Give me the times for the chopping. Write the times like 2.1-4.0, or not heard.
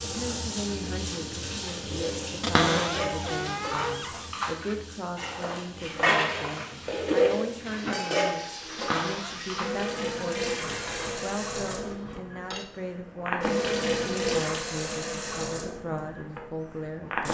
not heard.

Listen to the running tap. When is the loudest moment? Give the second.
14 s.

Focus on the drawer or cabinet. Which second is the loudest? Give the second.
3 s.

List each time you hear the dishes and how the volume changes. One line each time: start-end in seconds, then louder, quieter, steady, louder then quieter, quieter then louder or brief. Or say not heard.
1.6-12.8 louder then quieter.